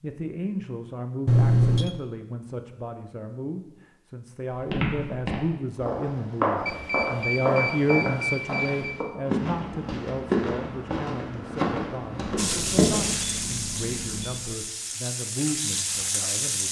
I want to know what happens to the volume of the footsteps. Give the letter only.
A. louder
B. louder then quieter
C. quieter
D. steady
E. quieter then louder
D.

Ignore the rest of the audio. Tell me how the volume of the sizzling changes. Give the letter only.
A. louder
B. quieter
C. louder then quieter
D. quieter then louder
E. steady
D.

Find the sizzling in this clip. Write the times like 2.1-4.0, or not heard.
12.3-16.6.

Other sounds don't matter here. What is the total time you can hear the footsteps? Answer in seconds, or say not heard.
9 s.